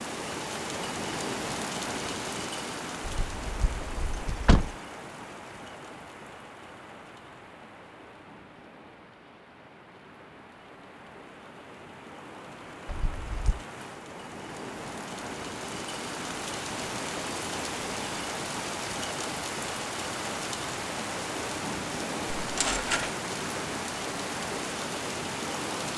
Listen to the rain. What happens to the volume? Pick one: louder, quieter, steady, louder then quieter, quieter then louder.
quieter then louder.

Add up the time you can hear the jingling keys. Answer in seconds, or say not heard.
3 s.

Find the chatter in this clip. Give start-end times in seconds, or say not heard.
not heard.